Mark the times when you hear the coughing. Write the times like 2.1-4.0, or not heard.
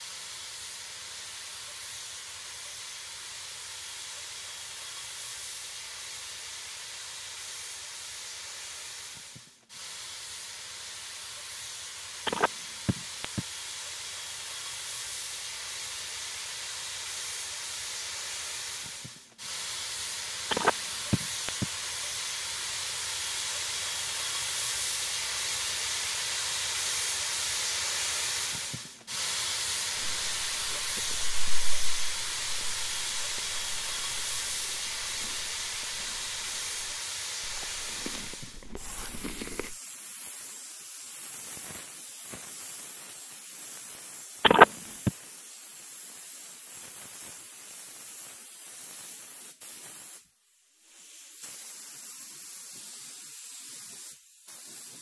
not heard.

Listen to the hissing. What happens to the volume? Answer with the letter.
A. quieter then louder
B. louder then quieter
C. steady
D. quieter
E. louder
B.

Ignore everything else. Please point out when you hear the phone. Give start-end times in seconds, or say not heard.
12.2-13.4, 20.5-21.6, 44.4-45.1.